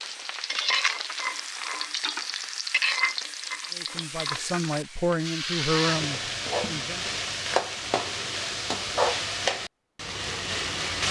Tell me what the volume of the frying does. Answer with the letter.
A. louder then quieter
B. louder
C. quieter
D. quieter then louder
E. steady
E.